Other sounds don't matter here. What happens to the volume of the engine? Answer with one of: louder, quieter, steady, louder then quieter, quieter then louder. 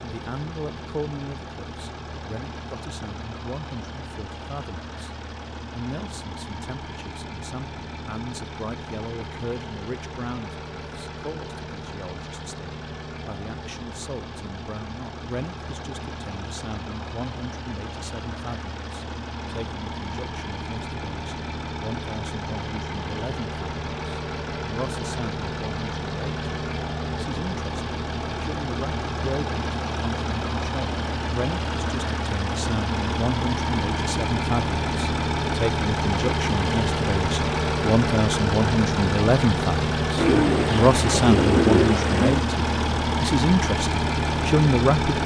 louder.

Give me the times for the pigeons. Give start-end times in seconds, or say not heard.
40.1-42.5.